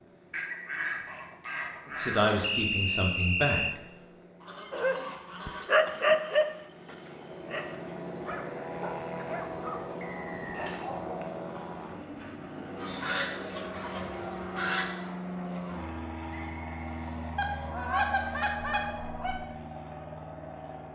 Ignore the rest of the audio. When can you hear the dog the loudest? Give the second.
6 s.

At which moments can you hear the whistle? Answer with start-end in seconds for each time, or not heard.
2.4-3.8, 10.0-10.7, 16.3-17.1.